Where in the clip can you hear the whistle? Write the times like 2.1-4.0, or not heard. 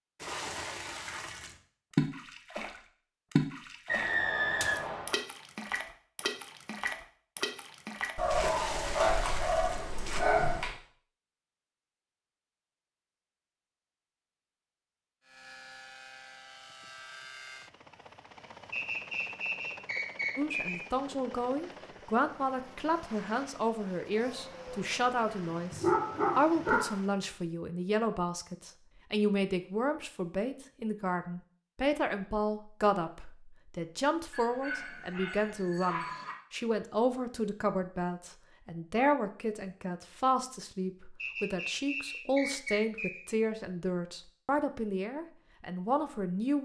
3.9-5.2, 18.7-20.8, 41.1-43.2.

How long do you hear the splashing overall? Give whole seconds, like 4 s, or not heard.
10 s.